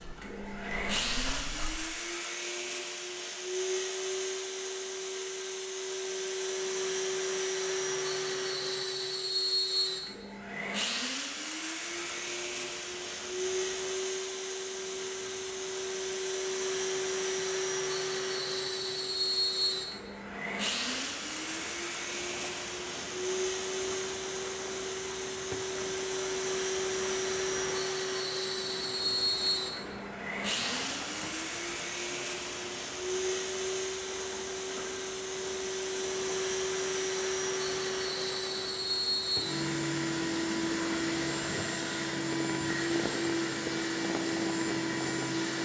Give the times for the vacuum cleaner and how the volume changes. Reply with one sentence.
You can hear the vacuum cleaner from 0.0 to 45.6 s, at a steady volume.